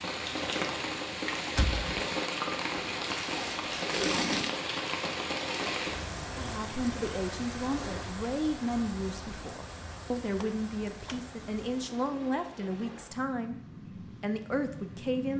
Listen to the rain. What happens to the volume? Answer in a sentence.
The volume of the rain goes down.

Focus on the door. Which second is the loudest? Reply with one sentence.
The volume of the door peaks at 2 seconds.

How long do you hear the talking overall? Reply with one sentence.
The talking can be heard for 9 seconds in total.